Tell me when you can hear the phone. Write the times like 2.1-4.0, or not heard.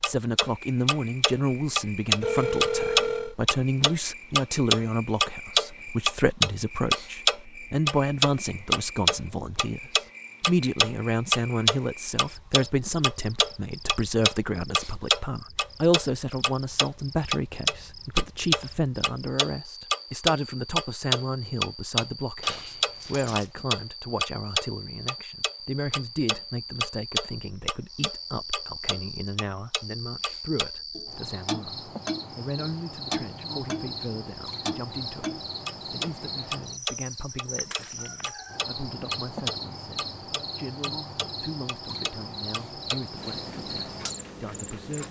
2.2-3.4, 22.4-23.5, 37.5-38.3.